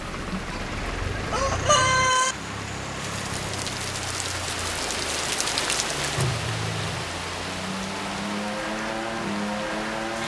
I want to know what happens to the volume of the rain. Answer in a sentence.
The loudness of the rain goes up, then down.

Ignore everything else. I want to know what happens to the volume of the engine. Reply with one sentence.
The loudness of the engine goes down, then up.